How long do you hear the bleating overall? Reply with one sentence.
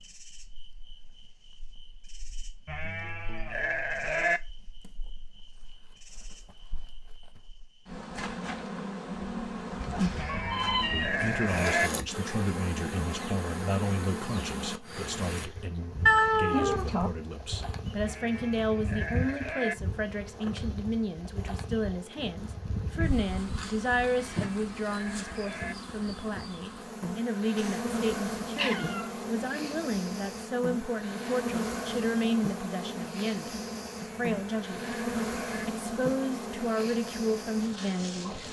You can hear the bleating for 9 seconds altogether.